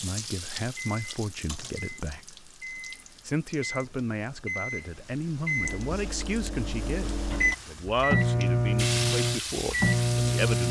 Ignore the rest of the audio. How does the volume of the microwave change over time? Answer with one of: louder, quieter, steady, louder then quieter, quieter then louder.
louder.